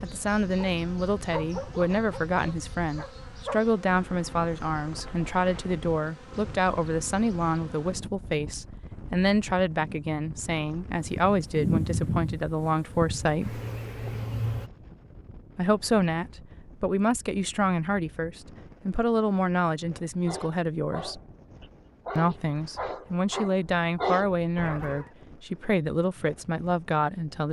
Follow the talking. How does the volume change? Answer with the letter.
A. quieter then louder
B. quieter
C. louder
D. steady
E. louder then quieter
D.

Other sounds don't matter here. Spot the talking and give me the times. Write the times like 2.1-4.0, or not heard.
0.0-13.6, 15.6-21.2, 22.1-27.4.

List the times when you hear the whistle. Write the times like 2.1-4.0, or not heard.
not heard.